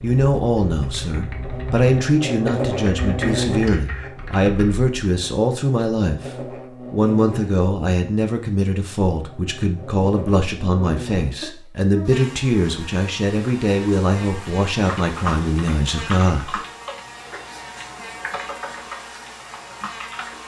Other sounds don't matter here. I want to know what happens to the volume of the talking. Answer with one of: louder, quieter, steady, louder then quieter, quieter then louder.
steady.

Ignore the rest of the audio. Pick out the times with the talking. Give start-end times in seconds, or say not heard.
0.0-16.6.